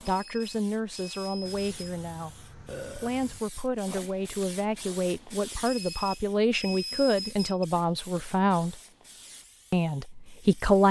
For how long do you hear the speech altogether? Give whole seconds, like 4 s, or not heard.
10 s.